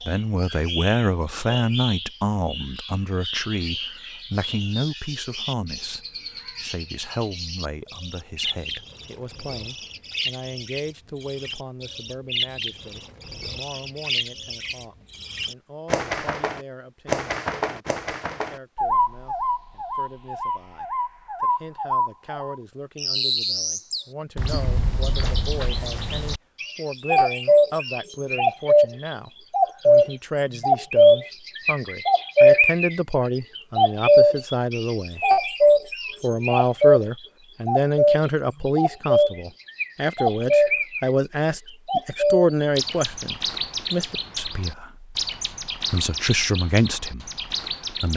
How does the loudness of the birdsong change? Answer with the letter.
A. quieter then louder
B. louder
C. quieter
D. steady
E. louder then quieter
E.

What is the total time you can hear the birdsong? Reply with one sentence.
The birdsong can be heard for 47 seconds in total.